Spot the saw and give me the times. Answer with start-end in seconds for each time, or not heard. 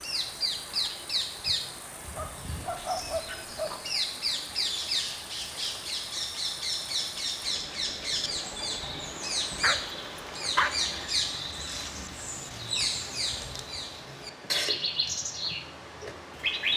not heard.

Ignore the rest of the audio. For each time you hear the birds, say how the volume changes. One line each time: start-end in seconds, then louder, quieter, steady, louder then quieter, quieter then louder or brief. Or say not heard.
0.0-16.7 steady.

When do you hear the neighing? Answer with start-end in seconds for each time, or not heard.
10.7-12.2.